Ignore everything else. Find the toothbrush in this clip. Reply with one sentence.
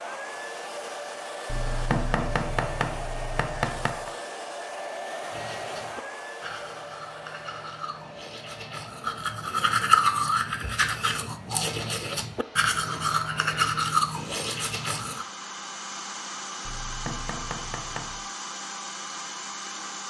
You can hear the toothbrush from 5.3 to 15.2 s.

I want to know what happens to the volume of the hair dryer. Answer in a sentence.
The volume of the hair dryer goes down, then up.